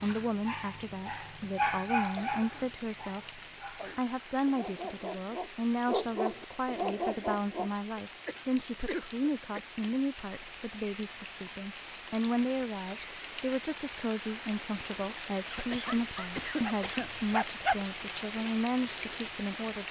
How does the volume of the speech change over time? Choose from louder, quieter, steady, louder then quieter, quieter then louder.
steady.